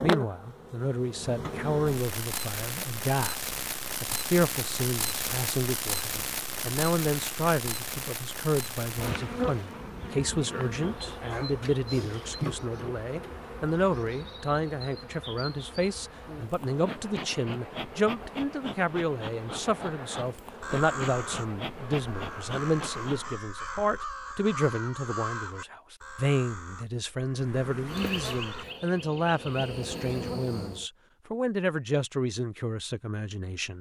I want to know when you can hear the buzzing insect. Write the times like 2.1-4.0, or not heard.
0.0-23.4, 27.4-30.9.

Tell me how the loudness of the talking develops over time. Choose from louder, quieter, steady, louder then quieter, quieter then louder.
steady.